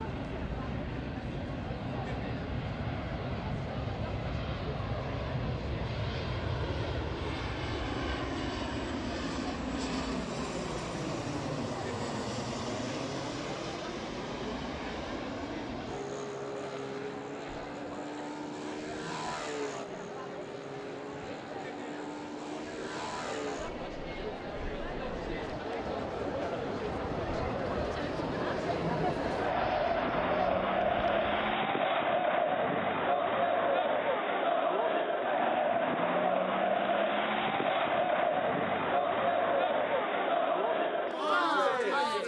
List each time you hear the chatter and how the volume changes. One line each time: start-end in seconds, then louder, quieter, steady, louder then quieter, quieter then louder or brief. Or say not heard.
0.0-42.2 louder.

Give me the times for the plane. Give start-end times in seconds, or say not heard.
0.0-31.6.